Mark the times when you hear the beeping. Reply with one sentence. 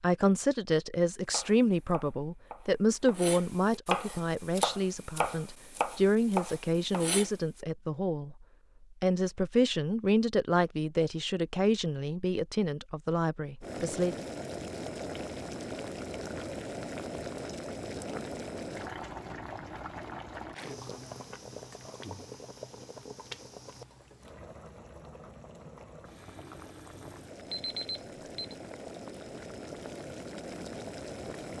You can hear the beeping from 27.5 to 28.6 s.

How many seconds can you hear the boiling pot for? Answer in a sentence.
You can hear the boiling pot for 18 seconds altogether.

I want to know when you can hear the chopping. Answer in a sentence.
The chopping can be heard from 1.3 to 7.3 s.